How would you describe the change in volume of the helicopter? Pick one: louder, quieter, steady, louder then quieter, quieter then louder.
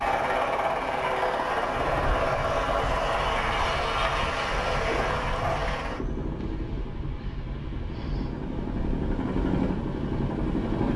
quieter then louder.